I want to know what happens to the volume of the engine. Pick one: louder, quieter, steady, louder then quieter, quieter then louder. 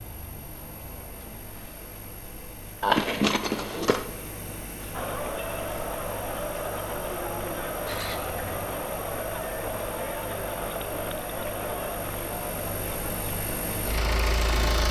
louder.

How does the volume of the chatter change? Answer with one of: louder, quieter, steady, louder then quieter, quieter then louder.
steady.